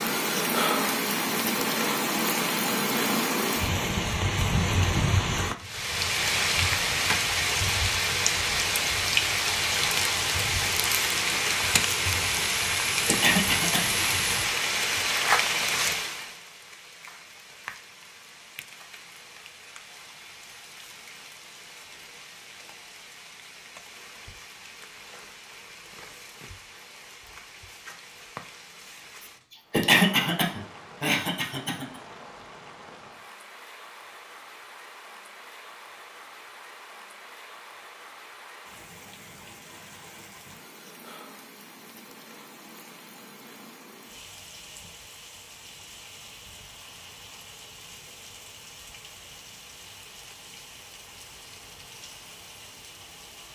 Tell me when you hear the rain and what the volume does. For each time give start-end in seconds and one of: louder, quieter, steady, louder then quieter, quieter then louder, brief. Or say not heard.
0.0-53.5 quieter.